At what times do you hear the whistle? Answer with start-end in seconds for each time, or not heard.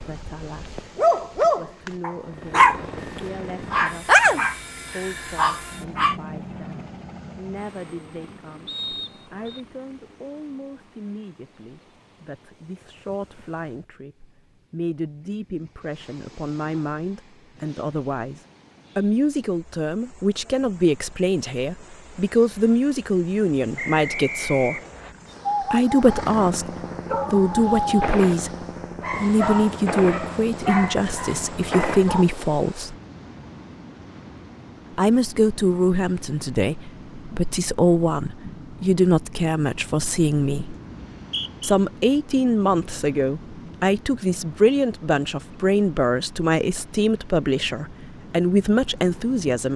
8.7-9.6, 23.8-25.1, 41.1-41.8.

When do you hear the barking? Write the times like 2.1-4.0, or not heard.
0.0-6.2, 25.4-26.1, 27.1-28.0, 29.0-32.2.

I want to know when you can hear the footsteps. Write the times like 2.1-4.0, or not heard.
not heard.